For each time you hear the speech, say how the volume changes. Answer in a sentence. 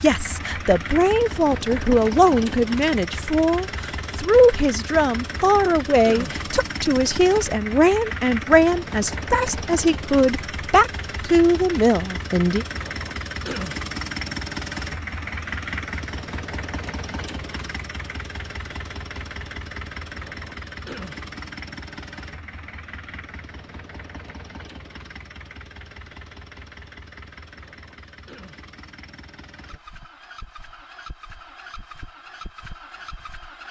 The speech can be heard from 0.0 to 12.7 s, at a steady volume.